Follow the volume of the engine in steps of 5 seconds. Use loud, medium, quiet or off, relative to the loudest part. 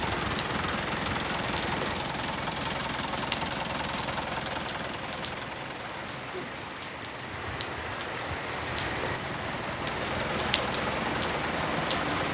loud, medium, loud.